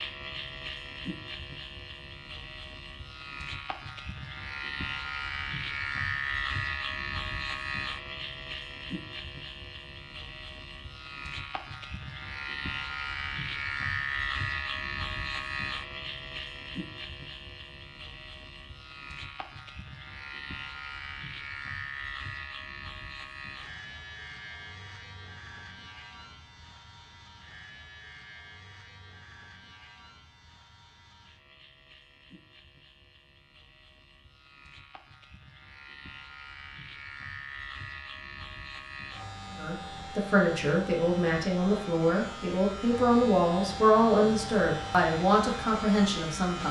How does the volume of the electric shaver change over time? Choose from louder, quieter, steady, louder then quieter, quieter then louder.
quieter then louder.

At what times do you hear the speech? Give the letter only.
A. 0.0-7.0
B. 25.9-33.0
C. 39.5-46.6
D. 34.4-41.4
C.